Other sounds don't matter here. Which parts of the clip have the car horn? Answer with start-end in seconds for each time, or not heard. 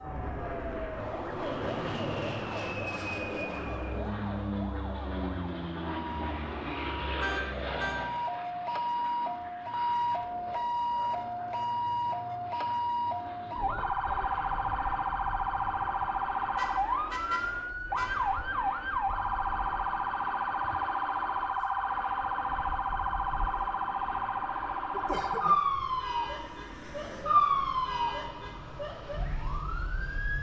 7.2-8.0, 16.6-18.2.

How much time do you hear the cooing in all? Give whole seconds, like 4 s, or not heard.
not heard.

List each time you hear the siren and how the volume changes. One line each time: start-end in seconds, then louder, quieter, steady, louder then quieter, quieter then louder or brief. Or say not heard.
0.0-30.3 louder.